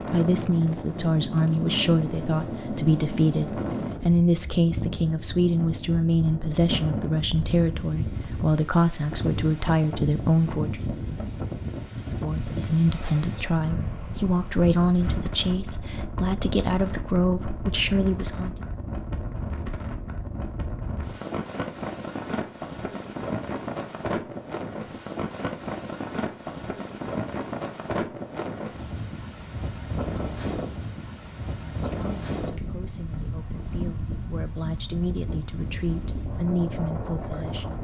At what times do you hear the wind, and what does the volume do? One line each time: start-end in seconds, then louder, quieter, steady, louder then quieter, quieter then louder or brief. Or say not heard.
0.0-37.7 steady.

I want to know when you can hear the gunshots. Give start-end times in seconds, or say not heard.
not heard.